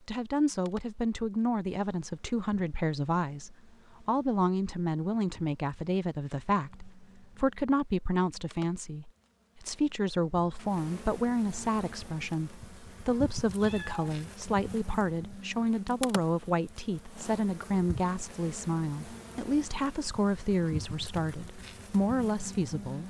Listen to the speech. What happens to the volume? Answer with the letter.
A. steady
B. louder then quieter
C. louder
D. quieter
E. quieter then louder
A.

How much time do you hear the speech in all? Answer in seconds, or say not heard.
23 s.